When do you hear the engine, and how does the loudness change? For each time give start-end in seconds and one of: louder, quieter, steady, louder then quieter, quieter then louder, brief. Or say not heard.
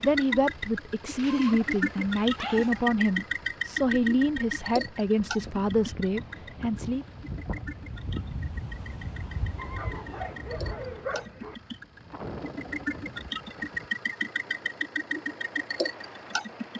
0.0-16.7 quieter then louder.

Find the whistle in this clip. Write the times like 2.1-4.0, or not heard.
not heard.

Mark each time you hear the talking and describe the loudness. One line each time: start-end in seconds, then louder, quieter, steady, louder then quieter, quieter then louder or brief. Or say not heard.
0.0-7.0 steady.